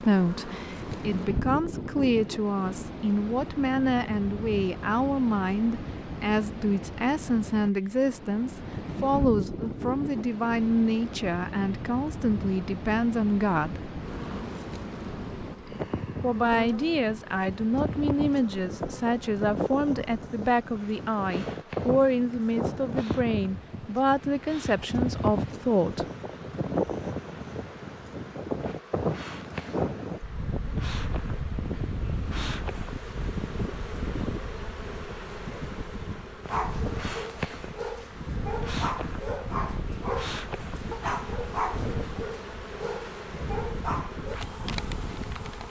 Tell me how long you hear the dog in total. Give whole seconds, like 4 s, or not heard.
8 s.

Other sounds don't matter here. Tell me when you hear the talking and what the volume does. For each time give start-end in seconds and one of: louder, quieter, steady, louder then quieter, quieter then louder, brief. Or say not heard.
0.0-13.8 steady
16.2-26.1 steady.